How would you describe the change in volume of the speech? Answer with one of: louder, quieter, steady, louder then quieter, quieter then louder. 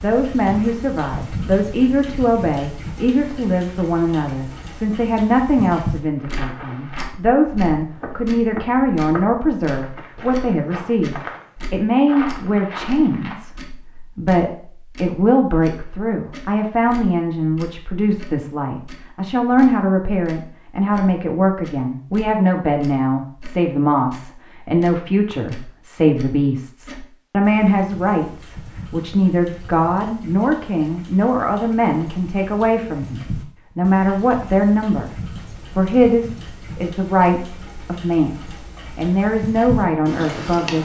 steady.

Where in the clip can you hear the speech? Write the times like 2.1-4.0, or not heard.
0.0-35.1, 35.8-40.8.